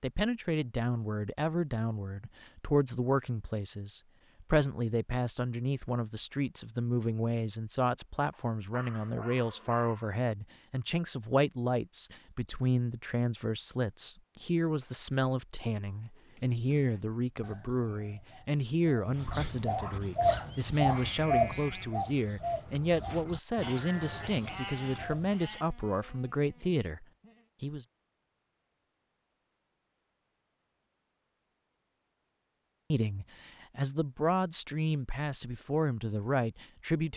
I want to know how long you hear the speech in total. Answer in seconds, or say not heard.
32 s.